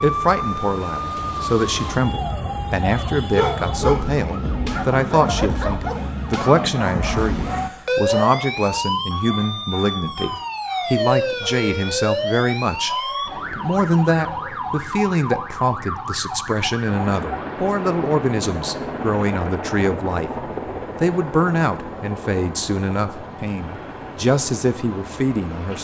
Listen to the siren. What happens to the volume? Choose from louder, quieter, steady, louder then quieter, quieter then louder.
quieter.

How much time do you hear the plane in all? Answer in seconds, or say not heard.
9 s.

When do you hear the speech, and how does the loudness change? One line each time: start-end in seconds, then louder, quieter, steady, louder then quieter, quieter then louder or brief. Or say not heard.
0.0-25.8 steady.